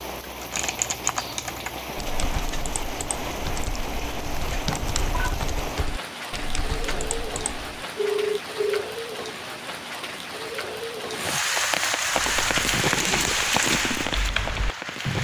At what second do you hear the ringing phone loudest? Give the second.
8 s.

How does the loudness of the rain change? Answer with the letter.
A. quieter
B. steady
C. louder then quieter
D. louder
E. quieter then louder
D.